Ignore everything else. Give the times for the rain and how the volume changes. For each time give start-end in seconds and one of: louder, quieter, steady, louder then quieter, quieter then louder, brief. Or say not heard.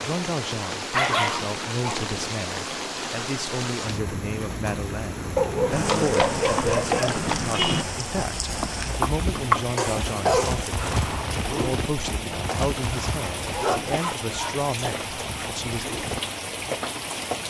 0.0-17.4 steady.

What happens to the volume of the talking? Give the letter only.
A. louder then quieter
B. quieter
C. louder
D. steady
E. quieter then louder
D.